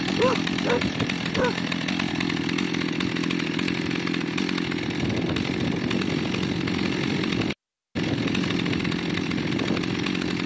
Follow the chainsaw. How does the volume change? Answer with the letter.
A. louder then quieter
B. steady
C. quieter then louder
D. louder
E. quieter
B.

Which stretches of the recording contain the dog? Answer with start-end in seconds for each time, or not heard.
0.1-1.7.